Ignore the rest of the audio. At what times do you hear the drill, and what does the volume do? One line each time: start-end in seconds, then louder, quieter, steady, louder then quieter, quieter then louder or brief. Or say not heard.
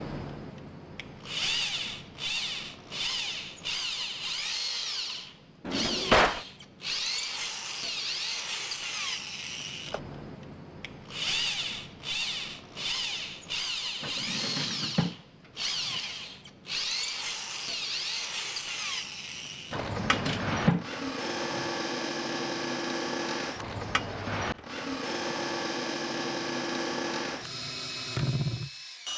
0.0-29.1 steady.